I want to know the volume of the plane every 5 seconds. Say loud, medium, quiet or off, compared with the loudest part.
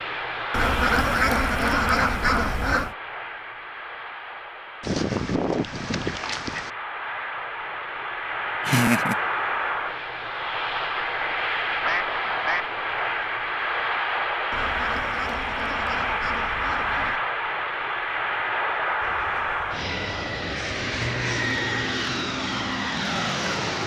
medium, loud, loud, loud, loud.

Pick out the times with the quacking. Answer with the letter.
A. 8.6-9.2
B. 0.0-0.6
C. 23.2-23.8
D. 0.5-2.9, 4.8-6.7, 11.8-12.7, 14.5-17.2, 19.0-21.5
D.